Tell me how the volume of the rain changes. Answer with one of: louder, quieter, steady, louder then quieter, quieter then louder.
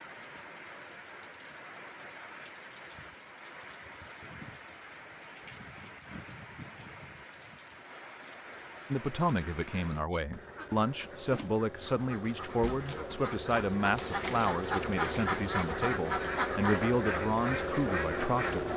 steady.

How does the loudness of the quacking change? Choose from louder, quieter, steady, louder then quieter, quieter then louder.
louder.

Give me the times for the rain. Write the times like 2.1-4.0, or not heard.
0.0-10.1.